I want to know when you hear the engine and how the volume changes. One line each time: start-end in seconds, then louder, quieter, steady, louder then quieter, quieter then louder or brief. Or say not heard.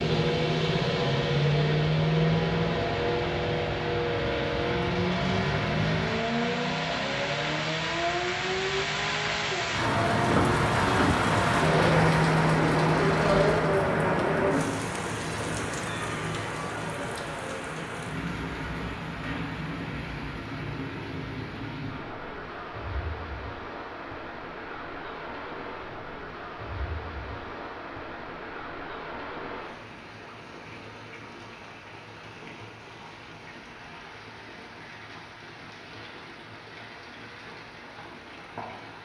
0.0-13.7 quieter.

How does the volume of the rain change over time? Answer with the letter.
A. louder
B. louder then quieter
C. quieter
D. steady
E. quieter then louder
B.